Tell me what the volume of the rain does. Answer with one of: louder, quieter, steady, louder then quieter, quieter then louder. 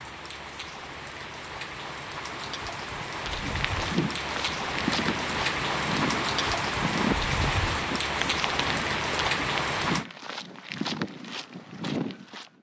louder.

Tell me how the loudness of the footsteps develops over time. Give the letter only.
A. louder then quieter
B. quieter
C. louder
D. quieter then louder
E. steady
E.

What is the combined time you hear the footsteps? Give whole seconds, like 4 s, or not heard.
9 s.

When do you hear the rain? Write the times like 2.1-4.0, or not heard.
0.0-10.1.